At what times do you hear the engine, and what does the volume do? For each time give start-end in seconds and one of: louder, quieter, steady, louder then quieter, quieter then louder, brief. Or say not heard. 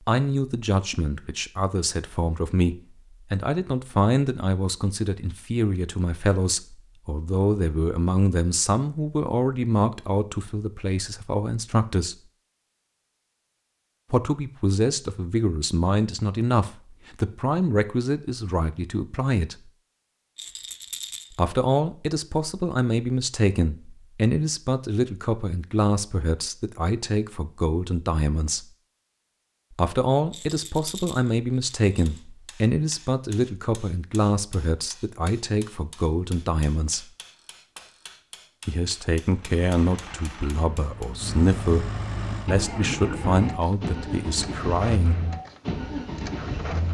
39.2-46.8 louder.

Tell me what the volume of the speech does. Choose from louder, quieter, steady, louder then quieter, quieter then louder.
steady.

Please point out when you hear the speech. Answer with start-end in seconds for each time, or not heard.
0.1-12.2, 14.1-19.7, 21.3-28.6, 29.7-37.0, 38.6-45.2.